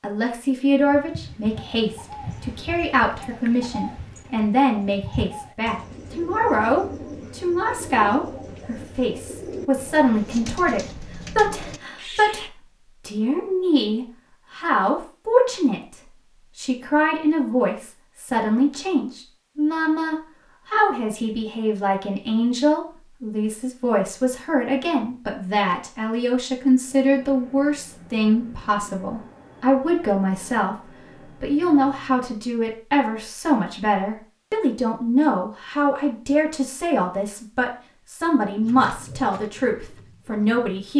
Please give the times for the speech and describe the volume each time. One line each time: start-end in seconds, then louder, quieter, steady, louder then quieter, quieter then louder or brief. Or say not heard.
0.0-40.9 steady.